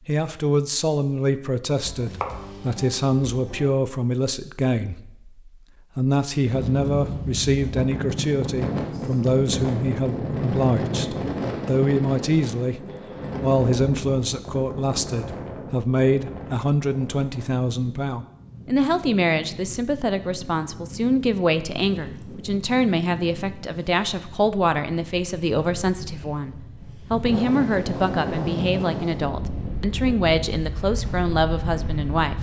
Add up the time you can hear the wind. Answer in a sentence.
You can hear the wind for 26 seconds altogether.